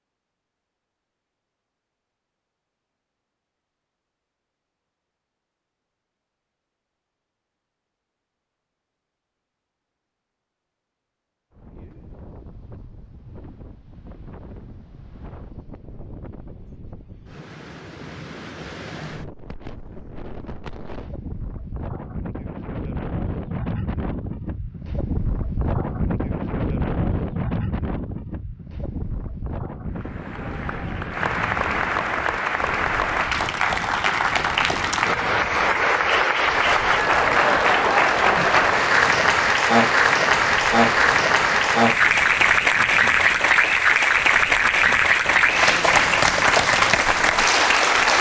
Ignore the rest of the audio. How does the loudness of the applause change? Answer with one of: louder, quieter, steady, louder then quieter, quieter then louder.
louder.